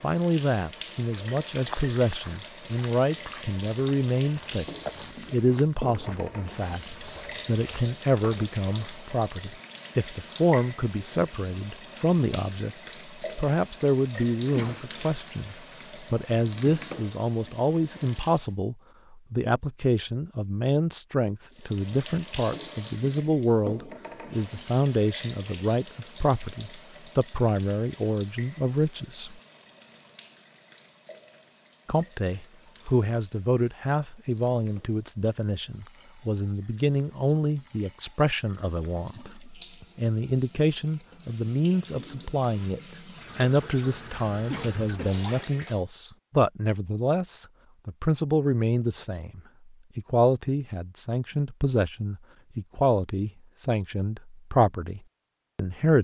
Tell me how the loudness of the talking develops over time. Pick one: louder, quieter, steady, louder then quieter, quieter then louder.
steady.